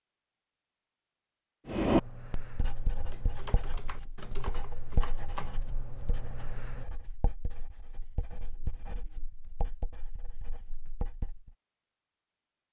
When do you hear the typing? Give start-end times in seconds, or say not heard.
1.8-6.9.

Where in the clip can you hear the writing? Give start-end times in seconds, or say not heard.
1.6-11.6.